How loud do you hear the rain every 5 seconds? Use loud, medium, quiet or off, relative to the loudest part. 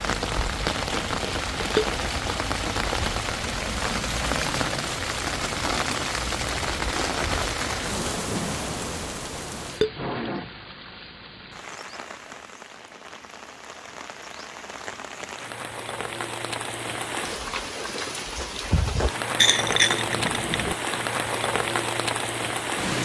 loud, loud, medium, loud, loud.